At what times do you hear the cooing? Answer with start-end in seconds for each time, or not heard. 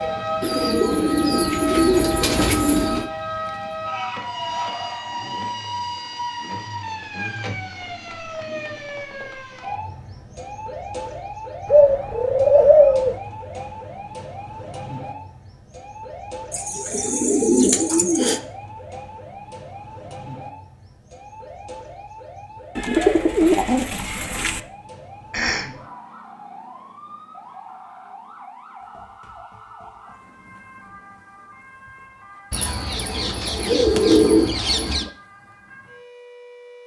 0.4-3.1, 11.7-13.2, 16.5-18.4, 22.8-24.6, 32.5-35.1.